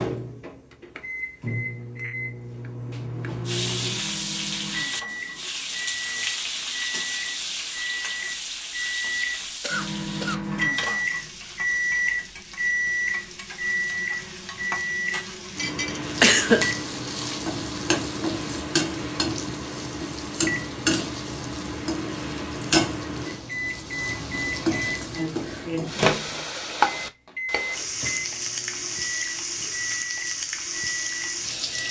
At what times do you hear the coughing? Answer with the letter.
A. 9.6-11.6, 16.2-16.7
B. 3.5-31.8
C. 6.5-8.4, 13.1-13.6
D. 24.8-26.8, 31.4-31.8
A.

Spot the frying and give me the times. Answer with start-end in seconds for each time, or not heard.
3.5-31.8.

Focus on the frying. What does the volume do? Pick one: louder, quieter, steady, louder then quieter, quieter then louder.
quieter then louder.